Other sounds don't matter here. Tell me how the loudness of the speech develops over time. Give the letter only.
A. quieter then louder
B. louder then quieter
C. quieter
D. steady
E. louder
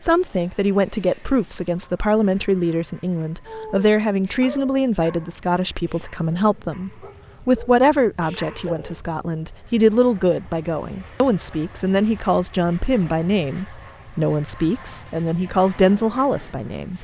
D.